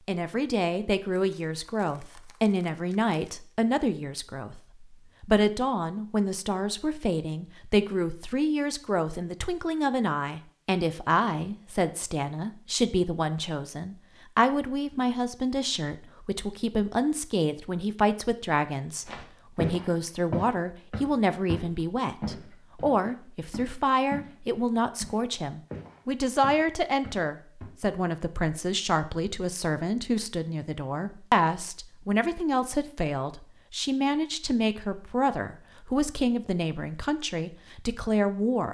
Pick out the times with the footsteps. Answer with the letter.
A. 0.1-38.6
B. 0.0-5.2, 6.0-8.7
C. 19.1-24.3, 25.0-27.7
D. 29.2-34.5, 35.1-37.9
C.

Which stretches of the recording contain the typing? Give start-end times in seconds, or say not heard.
not heard.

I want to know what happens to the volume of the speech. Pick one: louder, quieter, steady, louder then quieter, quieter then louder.
steady.